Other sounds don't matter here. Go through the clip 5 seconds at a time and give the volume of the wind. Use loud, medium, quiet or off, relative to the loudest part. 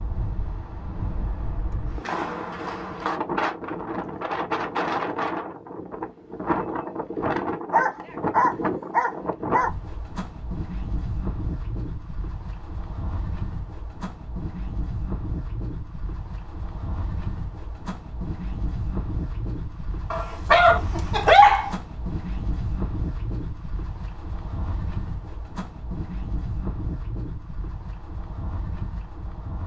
loud, loud, medium, medium, medium, medium.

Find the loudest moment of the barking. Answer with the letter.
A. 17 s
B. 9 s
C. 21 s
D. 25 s
C.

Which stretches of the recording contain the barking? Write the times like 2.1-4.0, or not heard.
7.7-9.7, 20.1-21.8.